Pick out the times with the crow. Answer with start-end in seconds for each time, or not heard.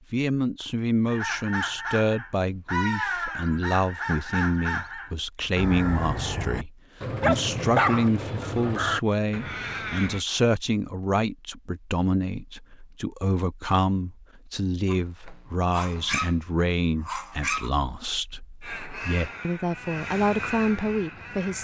1.1-10.2, 18.6-21.5.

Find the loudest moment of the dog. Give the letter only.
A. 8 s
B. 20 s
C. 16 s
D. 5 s
A.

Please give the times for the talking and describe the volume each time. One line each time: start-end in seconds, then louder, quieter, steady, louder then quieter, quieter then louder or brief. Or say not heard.
0.1-21.5 steady.